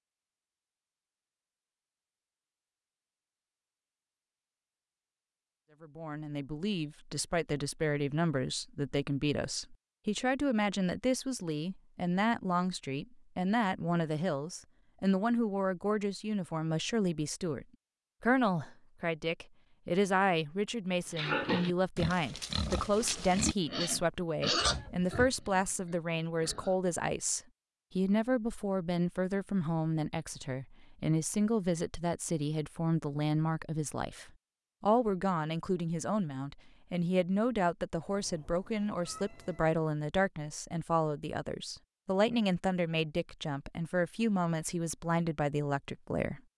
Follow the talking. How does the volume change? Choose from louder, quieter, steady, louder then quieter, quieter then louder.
steady.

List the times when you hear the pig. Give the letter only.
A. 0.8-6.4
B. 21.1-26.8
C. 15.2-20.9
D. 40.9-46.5
B.